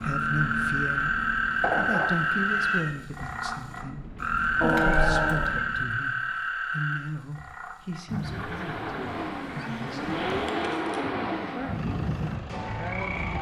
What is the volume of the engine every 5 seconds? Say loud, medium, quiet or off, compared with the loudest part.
medium, medium, loud.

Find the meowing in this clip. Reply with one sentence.
The meowing can be heard from 1.6 to 3.0 s, from 4.6 to 5.6 s and from 9.2 to 11.1 s.